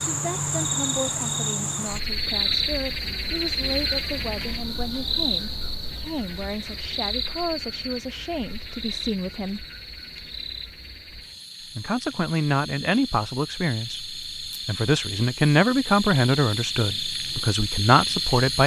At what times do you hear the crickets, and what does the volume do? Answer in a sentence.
You can hear the crickets from 0.0 to 18.6 s, getting quieter then louder.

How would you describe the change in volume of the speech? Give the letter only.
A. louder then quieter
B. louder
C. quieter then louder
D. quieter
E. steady
B.